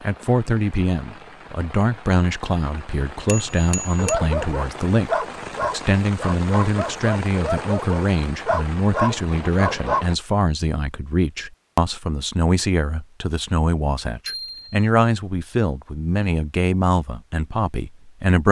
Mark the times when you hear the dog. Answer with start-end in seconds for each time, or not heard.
4.0-10.1.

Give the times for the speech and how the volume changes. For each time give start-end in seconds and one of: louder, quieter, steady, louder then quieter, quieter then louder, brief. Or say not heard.
0.0-18.4 steady.